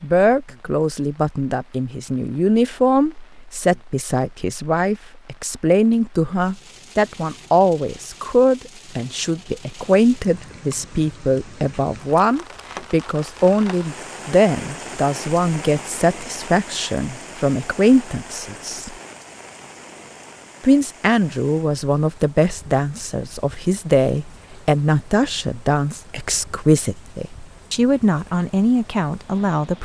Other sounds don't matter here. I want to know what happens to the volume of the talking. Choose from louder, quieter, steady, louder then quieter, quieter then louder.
steady.